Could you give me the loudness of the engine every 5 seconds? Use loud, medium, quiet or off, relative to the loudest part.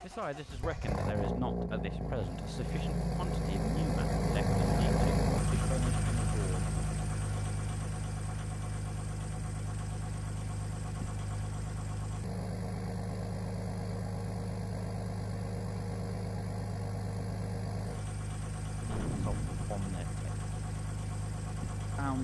loud, loud, medium, medium, medium.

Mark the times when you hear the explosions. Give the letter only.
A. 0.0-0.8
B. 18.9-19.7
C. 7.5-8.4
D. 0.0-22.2
B.